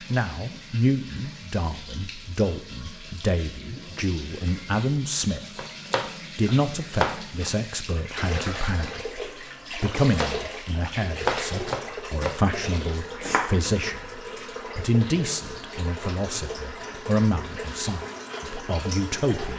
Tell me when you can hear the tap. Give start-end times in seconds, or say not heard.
0.0-19.5.